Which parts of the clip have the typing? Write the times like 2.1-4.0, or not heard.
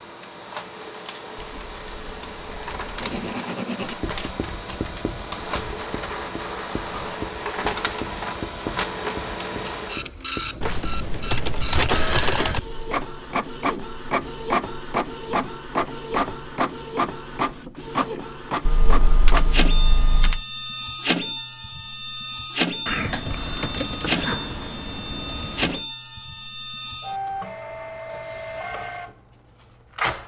1.4-3.1, 10.6-12.6, 18.6-20.4, 22.9-25.8.